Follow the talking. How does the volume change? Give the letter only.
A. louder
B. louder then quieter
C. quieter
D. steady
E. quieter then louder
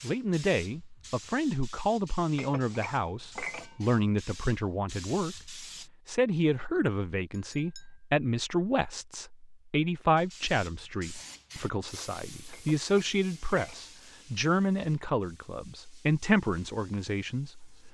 D.